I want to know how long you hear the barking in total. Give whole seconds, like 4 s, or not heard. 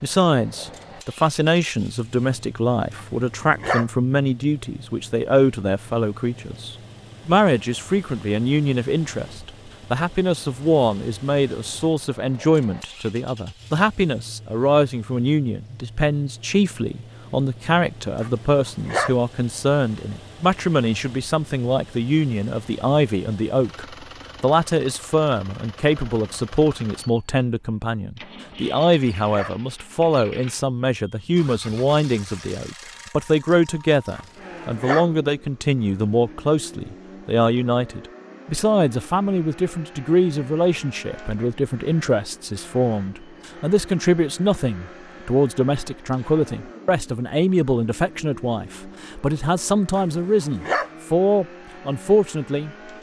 5 s.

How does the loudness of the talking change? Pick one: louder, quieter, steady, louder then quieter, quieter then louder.
steady.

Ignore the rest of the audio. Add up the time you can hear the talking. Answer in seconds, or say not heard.
53 s.